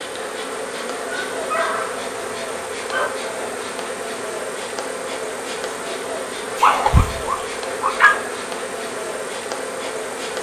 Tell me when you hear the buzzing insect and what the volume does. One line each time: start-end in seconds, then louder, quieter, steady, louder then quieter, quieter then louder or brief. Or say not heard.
0.0-10.3 steady.